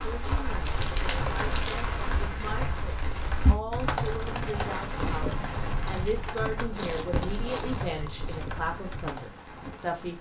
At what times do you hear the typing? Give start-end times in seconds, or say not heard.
0.5-9.3.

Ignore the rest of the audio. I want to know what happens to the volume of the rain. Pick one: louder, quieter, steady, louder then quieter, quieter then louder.
quieter.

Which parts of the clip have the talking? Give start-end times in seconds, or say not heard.
0.0-10.1.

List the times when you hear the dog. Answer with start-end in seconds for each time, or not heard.
not heard.